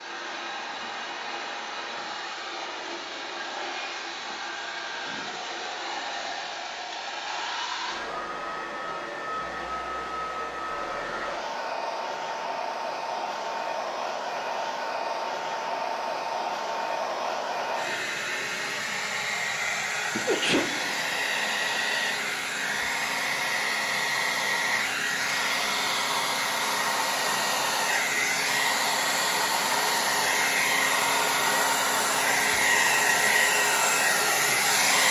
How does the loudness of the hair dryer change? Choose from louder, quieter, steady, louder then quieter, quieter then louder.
louder.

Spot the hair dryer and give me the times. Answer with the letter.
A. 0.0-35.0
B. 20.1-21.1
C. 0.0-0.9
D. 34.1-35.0
A.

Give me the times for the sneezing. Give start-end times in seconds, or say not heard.
20.1-21.1.